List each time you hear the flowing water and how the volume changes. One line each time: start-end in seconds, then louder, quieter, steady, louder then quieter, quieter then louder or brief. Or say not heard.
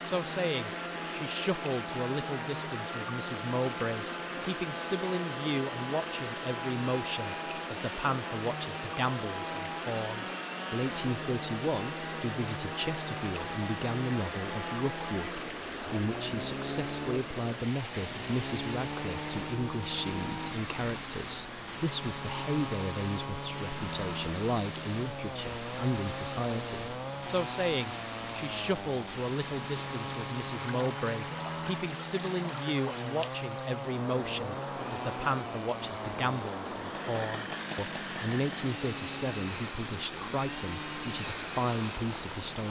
0.0-42.6 steady.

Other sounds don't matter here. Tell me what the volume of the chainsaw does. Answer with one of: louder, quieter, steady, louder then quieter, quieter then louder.
steady.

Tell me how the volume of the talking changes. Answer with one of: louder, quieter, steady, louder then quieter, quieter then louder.
steady.